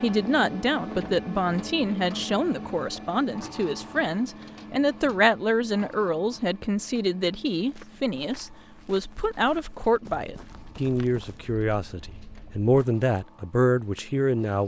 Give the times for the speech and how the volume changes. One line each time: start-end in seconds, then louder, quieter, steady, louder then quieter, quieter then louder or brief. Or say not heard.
0.0-14.6 steady.